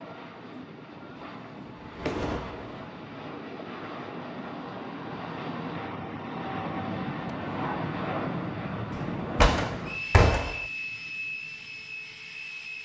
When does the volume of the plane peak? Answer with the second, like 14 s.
8 s.